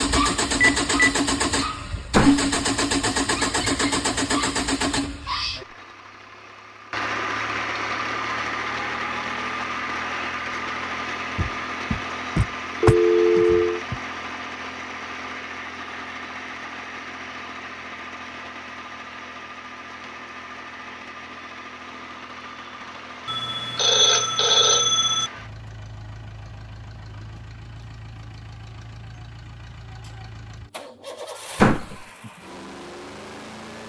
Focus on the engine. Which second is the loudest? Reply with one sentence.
The volume of the engine peaks at 3 seconds.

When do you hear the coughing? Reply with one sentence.
You can't hear the coughing here.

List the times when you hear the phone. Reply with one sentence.
You can hear the phone from 0.7 to 1.1 s, from 12.8 to 13.8 s and from 23.2 to 25.3 s.